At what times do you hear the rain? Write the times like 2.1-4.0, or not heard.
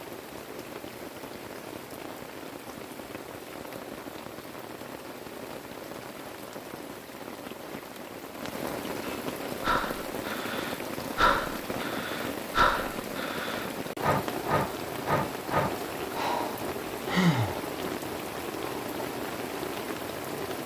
0.0-20.6.